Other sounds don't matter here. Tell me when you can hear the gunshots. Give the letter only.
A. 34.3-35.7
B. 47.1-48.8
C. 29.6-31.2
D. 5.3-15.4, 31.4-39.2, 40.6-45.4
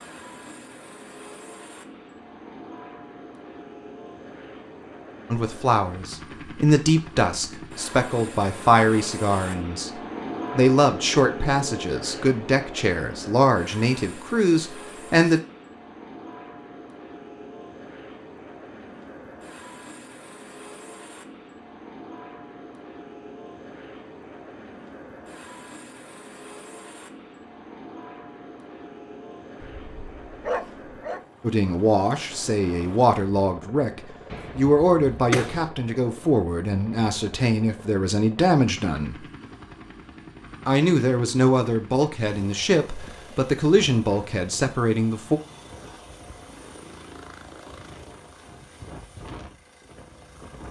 A.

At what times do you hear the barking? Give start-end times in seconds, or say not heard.
29.6-31.2.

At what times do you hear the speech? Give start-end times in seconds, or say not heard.
5.3-15.4, 31.4-39.2, 40.6-45.4.